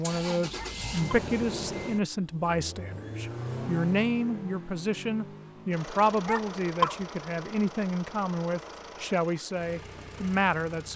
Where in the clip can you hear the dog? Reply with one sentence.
You can hear the dog from 0.6 to 1.2 s and from 6.2 to 7.0 s.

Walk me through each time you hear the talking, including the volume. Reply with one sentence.
You can hear the talking from 0.0 to 10.9 s, at a steady volume.